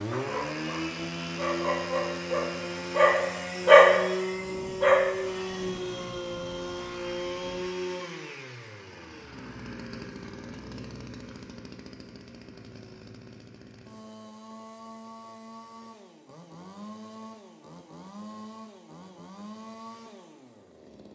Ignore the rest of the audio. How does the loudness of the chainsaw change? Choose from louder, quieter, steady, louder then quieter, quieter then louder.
quieter.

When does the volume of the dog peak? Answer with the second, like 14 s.
4 s.